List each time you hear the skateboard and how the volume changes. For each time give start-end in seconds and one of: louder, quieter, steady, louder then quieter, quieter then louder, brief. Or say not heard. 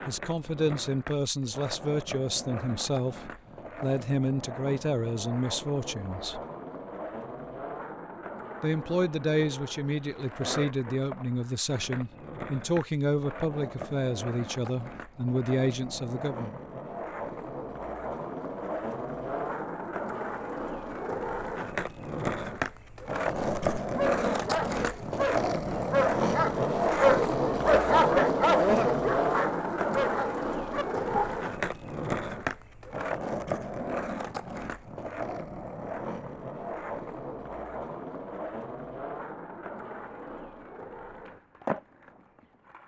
0.0-42.8 louder then quieter.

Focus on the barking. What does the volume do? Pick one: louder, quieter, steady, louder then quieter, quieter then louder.
louder then quieter.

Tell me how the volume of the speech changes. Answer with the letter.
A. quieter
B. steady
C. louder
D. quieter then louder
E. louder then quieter
B.